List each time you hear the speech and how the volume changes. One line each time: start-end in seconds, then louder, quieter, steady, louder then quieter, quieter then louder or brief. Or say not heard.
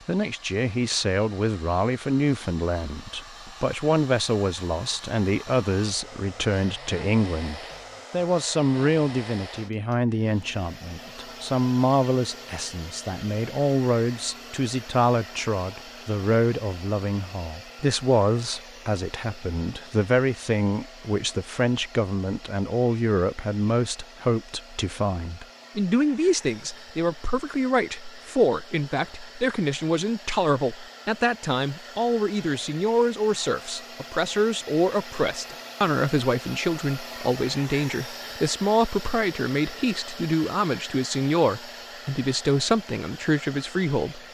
0.1-44.2 steady.